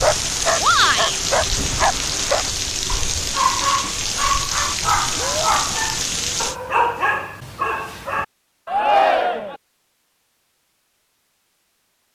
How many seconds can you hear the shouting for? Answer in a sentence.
The shouting can be heard for 2 seconds in total.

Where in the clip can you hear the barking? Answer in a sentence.
You can hear the barking from 0.0 to 8.2 s.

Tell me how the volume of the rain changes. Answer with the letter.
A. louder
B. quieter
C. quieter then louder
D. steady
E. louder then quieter
D.